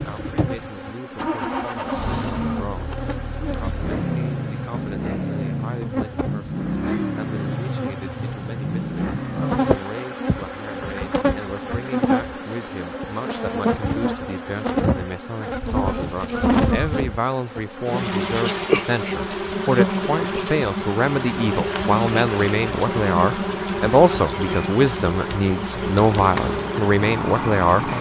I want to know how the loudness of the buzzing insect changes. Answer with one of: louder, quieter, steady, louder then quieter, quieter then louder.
louder.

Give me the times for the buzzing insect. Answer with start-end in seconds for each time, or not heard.
0.0-27.9.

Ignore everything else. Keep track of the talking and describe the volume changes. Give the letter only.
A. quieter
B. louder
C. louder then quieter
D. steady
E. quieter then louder
B.